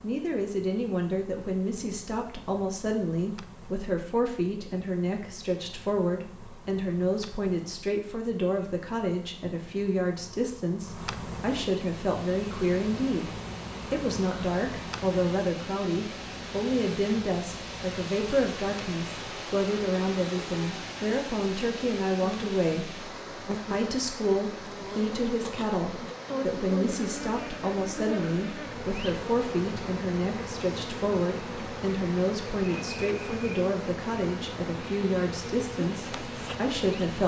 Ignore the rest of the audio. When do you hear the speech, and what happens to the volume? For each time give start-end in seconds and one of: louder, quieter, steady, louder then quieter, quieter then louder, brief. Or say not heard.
0.0-37.2 steady.